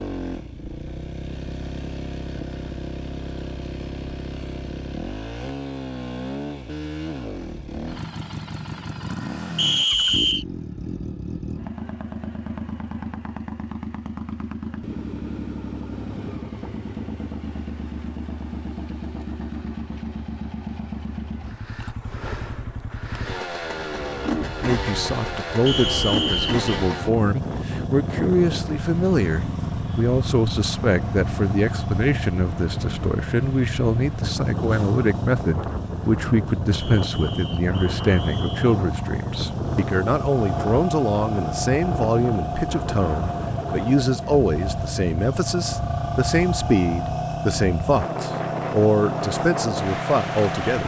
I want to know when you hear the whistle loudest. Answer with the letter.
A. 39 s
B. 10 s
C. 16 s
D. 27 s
B.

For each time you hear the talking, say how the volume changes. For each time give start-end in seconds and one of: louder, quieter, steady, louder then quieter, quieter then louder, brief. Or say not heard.
24.6-50.8 steady.